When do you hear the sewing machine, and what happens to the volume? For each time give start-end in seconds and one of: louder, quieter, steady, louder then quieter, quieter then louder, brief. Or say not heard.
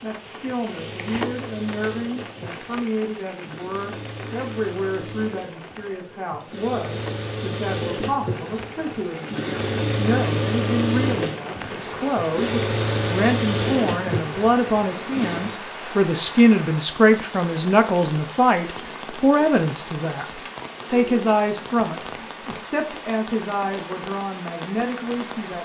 0.0-15.6 louder.